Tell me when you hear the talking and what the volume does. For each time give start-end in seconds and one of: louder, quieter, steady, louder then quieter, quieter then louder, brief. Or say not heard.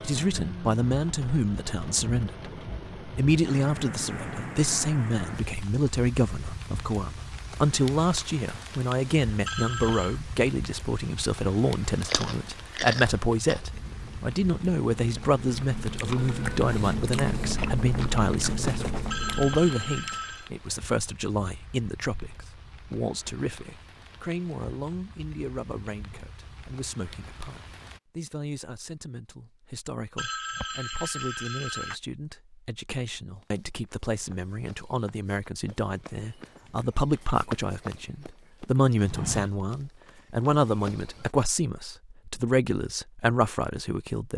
0.0-44.3 quieter then louder.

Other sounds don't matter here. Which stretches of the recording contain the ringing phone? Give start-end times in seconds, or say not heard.
9.4-10.2, 19.1-20.5, 30.1-32.0.